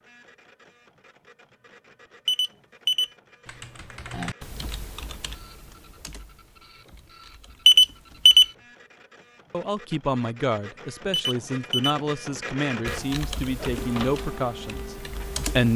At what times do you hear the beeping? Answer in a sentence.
The beeping can be heard from 2.2 to 3.1 s, from 7.7 to 8.4 s and from 11.1 to 11.9 s.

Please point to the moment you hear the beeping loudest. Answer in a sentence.
The volume of the beeping peaks at 8 seconds.